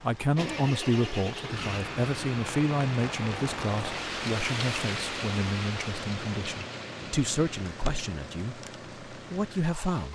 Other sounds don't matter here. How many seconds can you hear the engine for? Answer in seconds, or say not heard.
10 s.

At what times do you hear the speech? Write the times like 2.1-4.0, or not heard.
0.0-10.1.